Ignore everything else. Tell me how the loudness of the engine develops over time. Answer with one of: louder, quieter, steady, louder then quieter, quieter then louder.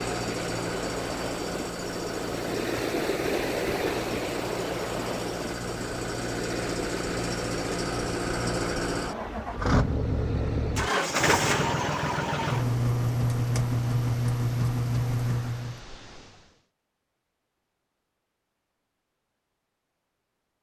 louder.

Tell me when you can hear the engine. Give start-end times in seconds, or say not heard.
0.0-15.8.